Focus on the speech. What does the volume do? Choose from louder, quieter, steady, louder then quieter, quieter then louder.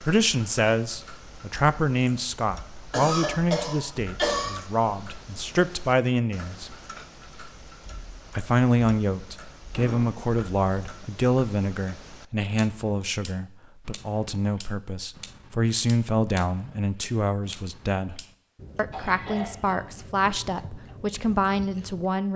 steady.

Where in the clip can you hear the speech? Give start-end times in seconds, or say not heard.
0.0-6.8, 8.3-22.3.